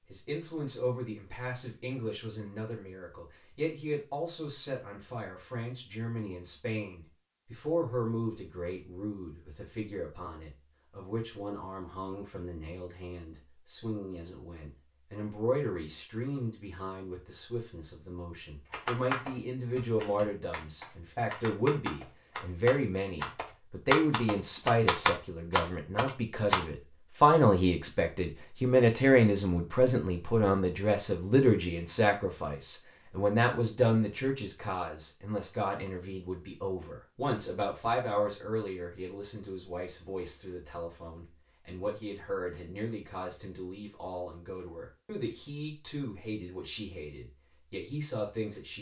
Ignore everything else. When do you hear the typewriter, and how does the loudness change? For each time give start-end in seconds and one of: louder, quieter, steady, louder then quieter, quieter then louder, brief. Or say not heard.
18.7-26.6 louder.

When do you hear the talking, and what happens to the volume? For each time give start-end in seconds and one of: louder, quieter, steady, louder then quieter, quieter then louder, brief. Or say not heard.
0.1-48.7 louder then quieter.